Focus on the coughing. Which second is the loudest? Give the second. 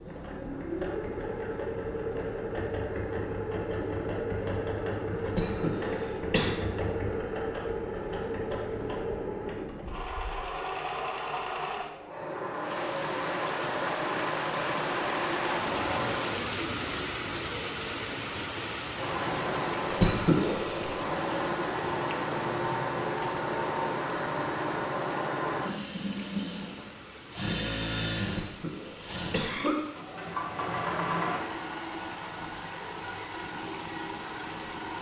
20 s.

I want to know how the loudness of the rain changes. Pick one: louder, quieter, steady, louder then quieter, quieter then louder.
quieter.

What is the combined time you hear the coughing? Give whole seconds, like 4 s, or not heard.
4 s.